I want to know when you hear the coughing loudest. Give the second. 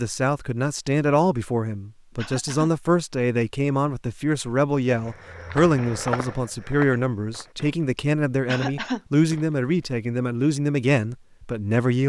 9 s.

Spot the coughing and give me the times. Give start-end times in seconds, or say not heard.
2.1-2.7, 8.4-9.0.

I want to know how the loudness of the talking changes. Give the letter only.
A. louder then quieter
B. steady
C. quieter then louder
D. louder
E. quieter
B.